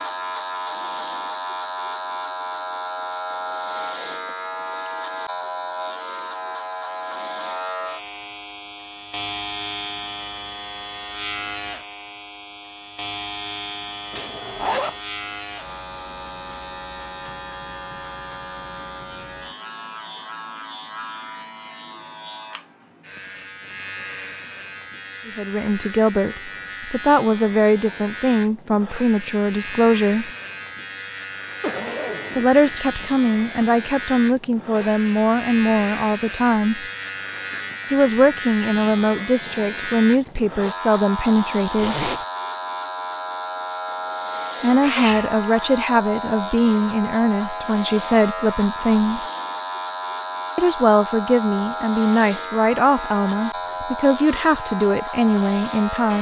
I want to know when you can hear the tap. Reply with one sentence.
You can't hear the tap here.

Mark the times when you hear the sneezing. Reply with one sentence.
The sneezing can be heard from 44.8 to 45.4 s.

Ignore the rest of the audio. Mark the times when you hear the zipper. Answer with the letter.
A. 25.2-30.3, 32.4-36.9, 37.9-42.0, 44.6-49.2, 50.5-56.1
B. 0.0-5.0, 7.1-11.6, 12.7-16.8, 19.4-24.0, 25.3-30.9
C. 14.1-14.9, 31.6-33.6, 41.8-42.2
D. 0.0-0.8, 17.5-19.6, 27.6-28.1
C.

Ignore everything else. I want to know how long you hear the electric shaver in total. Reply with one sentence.
The electric shaver can be heard for 56 seconds in total.